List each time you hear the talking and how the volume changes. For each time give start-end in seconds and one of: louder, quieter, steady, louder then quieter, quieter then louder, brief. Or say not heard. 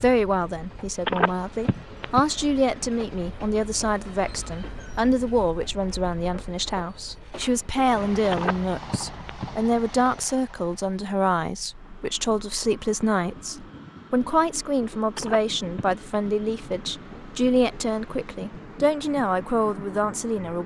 0.0-20.6 steady.